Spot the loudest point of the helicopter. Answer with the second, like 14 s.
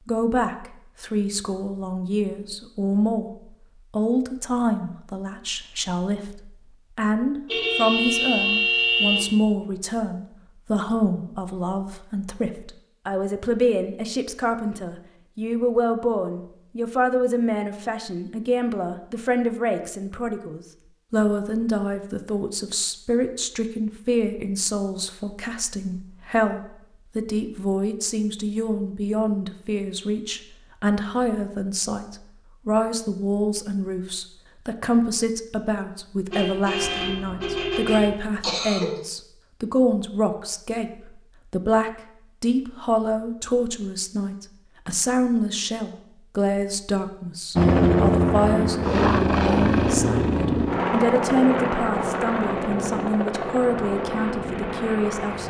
48 s.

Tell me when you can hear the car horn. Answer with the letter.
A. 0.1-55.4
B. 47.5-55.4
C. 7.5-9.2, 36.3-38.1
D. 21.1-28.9
C.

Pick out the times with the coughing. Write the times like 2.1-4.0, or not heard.
38.4-39.0.